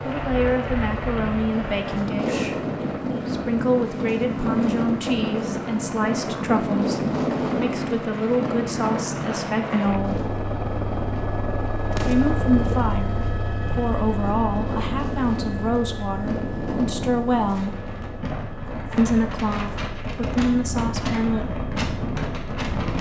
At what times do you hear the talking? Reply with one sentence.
You can hear the talking from 0.0 to 2.6 s, from 3.2 to 10.3 s, from 12.1 to 17.8 s and from 18.9 to 21.4 s.